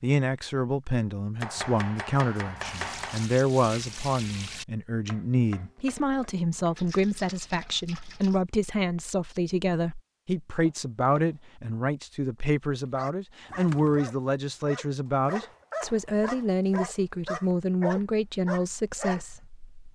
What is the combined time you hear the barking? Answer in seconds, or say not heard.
6 s.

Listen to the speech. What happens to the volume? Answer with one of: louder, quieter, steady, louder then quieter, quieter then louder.
steady.